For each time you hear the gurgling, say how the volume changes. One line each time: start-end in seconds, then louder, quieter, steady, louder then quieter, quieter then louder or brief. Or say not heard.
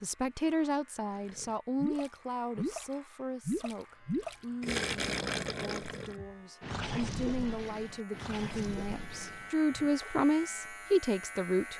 1.1-2.9 brief
3.5-10.2 quieter.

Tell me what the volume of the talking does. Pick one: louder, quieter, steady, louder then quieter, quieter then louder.
quieter then louder.